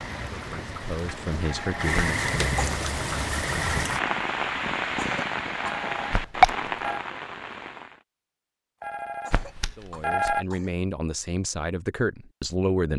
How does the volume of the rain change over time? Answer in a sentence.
The volume of the rain goes up.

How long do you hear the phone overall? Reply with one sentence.
You can hear the phone for 3 seconds altogether.